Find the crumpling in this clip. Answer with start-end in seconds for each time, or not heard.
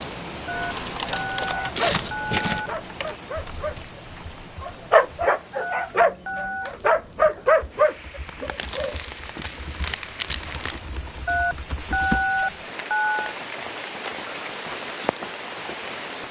1.8-2.6, 8.2-10.8.